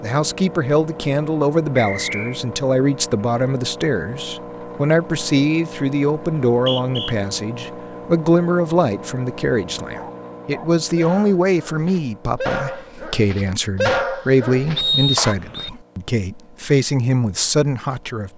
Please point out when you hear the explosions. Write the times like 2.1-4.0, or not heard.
not heard.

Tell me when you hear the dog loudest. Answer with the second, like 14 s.
14 s.